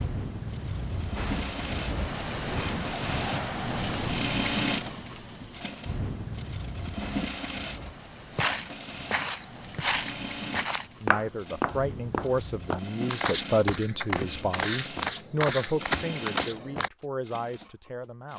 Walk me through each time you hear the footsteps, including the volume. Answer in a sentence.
The footsteps can be heard from 8.3 to 16.9 s, at a steady volume.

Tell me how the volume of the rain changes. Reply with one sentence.
The volume of the rain goes down.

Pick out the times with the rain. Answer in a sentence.
You can hear the rain from 0.0 to 12.8 s.